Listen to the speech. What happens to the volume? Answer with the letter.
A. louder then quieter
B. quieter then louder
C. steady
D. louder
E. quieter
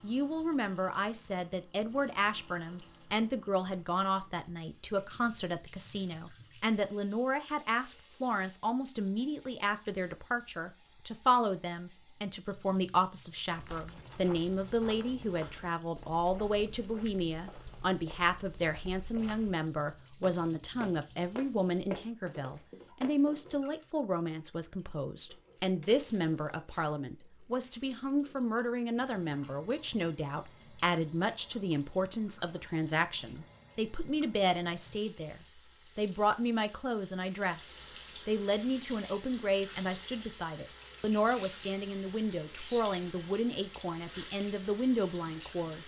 C.